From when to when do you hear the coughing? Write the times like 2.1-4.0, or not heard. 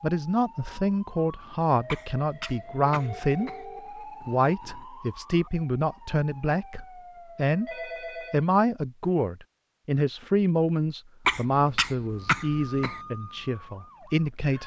1.9-3.6, 11.2-13.0.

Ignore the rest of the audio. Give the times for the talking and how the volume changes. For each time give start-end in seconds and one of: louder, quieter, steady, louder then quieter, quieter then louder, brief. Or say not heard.
0.0-14.6 steady.